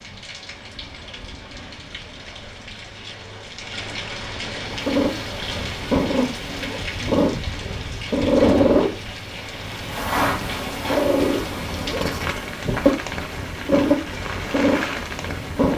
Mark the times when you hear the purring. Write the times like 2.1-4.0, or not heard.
4.7-15.7.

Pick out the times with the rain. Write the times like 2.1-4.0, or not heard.
0.0-15.7.